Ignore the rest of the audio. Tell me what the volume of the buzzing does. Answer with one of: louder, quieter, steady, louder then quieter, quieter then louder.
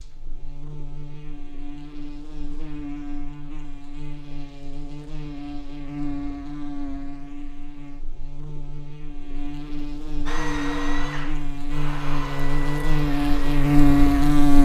louder.